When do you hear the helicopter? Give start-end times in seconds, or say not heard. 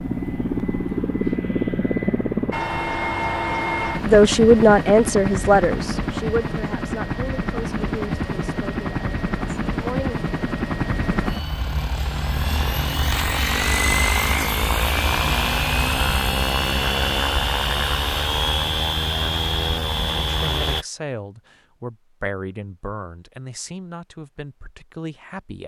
0.0-20.9.